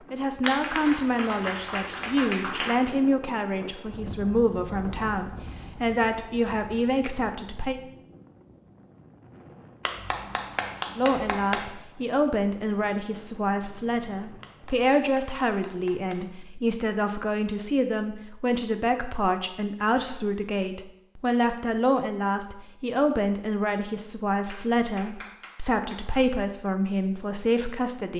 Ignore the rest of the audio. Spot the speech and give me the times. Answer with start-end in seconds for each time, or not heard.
0.1-7.8, 10.9-28.1.